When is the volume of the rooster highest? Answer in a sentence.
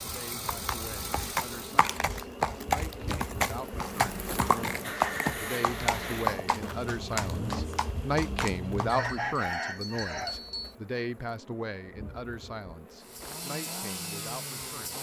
The volume of the rooster peaks at 9 seconds.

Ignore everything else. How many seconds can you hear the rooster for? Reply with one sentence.
You can hear the rooster for 2 seconds altogether.